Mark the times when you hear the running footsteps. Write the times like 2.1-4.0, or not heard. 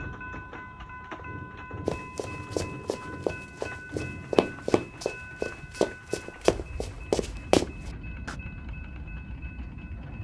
1.9-8.3.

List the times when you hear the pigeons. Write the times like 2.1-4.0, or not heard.
not heard.